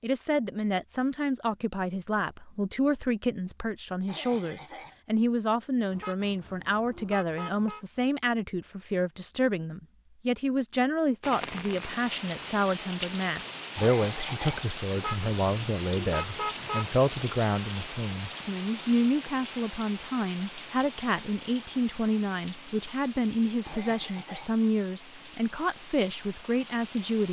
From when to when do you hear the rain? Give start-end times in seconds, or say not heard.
11.2-27.2.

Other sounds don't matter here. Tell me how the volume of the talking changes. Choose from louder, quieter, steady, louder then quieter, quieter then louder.
steady.